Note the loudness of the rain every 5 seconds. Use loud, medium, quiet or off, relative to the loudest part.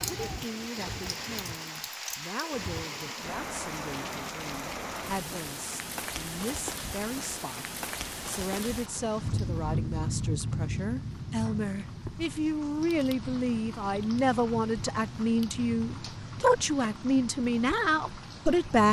loud, loud, loud, medium.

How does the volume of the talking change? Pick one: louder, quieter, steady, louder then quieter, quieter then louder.
louder.